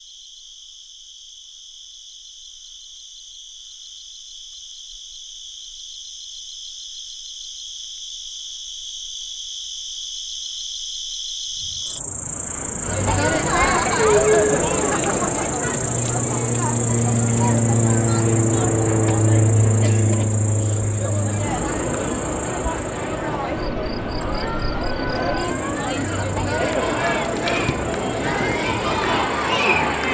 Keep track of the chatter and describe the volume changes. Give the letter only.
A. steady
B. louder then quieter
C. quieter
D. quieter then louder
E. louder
D.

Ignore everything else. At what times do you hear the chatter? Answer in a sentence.
You can hear the chatter from 12.8 to 30.0 s.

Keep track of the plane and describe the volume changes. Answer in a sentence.
The volume of the plane goes up, then down.